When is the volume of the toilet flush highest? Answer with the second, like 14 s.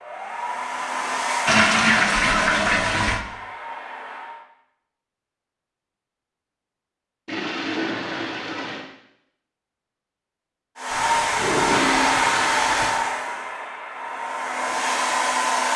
2 s.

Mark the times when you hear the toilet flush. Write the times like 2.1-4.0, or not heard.
1.4-3.2, 7.2-8.8, 10.9-12.9.